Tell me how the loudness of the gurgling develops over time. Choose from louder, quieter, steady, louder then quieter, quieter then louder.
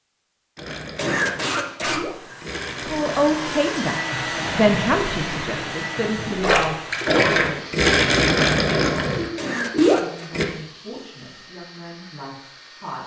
louder.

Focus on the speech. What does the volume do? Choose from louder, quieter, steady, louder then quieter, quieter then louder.
quieter.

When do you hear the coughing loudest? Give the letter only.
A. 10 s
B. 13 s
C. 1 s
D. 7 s
C.